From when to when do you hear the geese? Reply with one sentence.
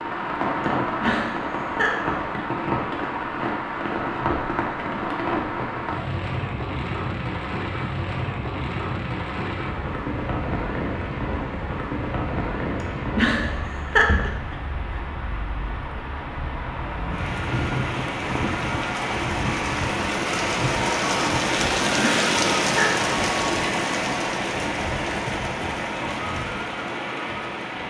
You can't hear the geese here.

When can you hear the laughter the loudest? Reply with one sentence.
The volume of the laughter peaks at 14 seconds.